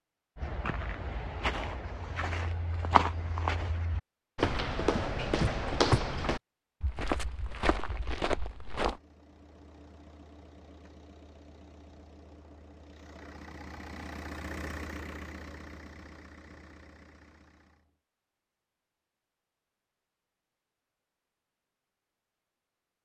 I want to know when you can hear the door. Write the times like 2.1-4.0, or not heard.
4.4-6.0.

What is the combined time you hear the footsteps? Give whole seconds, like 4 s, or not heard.
9 s.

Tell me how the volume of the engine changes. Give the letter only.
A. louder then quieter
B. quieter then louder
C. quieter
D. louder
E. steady
A.